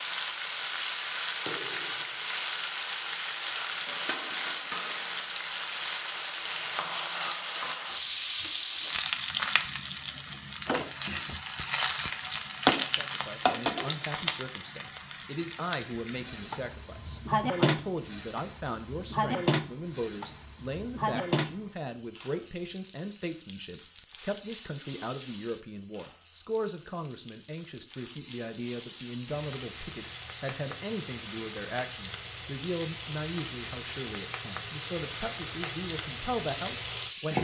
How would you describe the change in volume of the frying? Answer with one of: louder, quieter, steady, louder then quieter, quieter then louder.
quieter then louder.